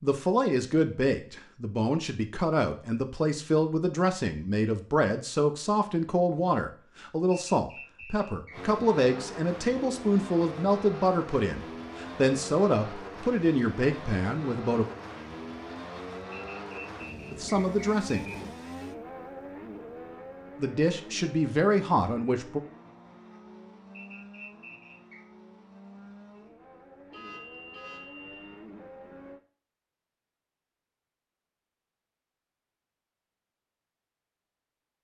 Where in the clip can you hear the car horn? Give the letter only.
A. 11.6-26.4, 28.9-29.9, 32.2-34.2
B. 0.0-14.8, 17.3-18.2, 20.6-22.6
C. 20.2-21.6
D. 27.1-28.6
D.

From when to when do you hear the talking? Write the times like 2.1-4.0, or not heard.
0.0-14.8, 17.3-18.2, 20.6-22.6.